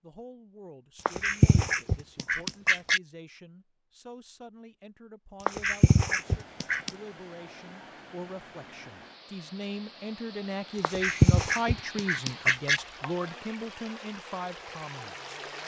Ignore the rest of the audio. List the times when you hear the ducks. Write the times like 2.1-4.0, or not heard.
1.1-3.0, 5.5-6.9, 10.8-12.8.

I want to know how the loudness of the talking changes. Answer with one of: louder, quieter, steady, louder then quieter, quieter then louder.
louder.